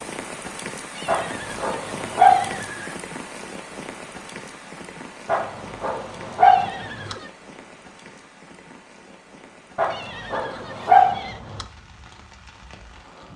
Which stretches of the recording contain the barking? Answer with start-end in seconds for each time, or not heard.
1.1-2.6, 5.2-7.2, 9.8-11.7.